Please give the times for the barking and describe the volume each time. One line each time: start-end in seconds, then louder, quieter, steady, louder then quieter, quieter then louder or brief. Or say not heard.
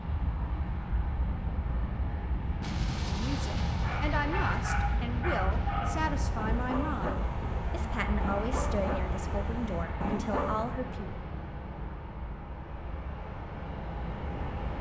3.8-10.6 steady.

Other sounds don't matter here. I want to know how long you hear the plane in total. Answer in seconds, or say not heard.
15 s.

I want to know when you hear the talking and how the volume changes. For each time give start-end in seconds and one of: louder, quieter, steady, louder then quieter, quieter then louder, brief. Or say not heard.
3.0-11.2 steady.